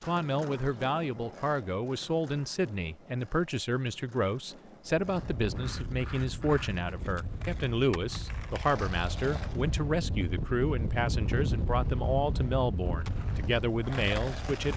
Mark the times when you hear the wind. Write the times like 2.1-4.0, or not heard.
5.0-14.7.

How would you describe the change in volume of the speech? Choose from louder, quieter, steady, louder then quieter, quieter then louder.
steady.